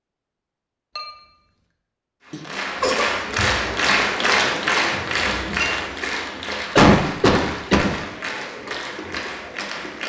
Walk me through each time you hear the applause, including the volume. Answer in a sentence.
The applause can be heard from 2.2 to 10.0 s, getting quieter.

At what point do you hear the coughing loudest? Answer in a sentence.
The loudest moment of the coughing is at 7 seconds.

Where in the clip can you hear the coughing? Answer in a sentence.
You can hear the coughing from 2.3 to 3.1 s and from 6.8 to 8.0 s.